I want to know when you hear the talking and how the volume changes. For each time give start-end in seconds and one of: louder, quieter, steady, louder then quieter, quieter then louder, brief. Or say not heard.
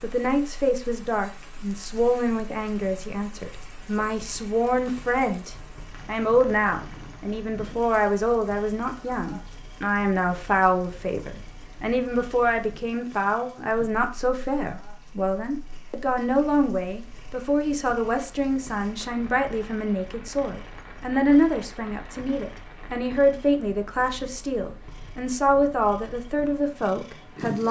0.0-27.6 steady.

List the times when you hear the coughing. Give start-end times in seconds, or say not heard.
not heard.